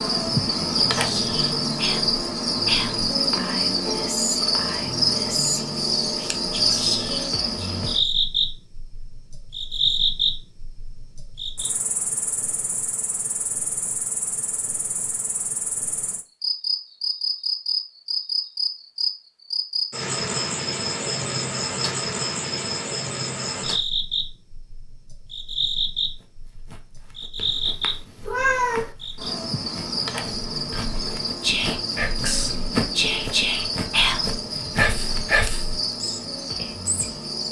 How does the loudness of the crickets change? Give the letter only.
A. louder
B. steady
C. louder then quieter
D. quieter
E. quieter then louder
D.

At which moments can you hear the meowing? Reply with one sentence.
You can hear the meowing from 27.4 to 28.9 s.